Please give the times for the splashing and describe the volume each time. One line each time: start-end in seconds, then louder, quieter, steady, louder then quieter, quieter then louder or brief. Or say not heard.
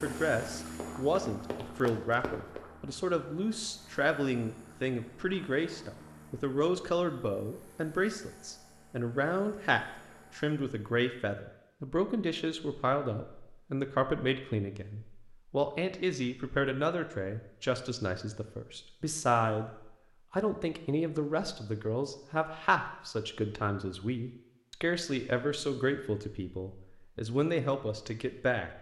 not heard.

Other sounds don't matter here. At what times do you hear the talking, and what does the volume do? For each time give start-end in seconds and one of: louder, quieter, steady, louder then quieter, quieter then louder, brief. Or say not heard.
0.0-28.7 steady.